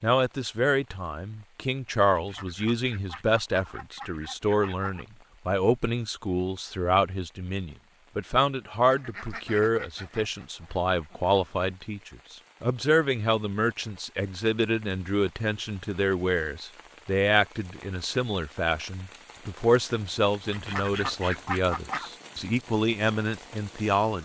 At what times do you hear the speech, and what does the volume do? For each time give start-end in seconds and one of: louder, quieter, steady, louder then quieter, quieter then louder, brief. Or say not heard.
0.0-24.1 steady.